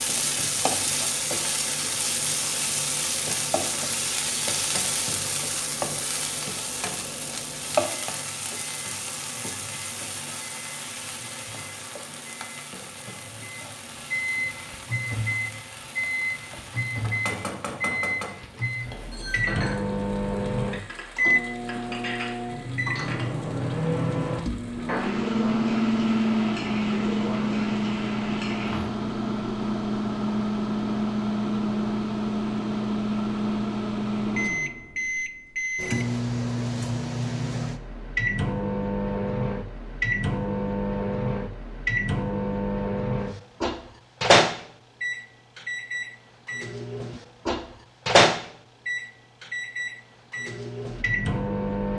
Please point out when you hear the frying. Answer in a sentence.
The frying can be heard from 0.0 to 28.9 s.